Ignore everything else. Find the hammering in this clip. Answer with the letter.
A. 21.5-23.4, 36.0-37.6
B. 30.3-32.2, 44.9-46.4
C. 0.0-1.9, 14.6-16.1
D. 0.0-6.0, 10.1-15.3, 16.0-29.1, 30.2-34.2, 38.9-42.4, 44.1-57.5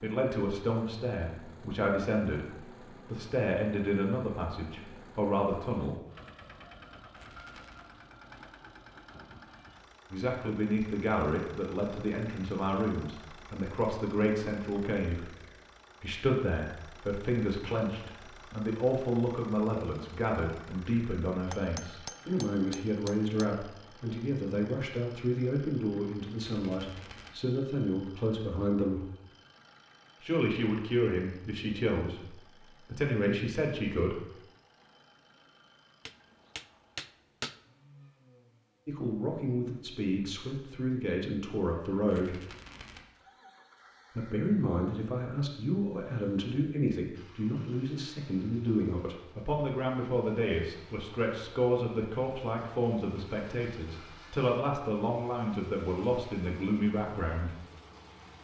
A.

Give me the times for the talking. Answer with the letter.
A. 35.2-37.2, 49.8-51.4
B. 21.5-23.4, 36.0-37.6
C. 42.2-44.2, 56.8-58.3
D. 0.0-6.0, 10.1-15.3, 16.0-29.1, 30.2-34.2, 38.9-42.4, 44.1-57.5
D.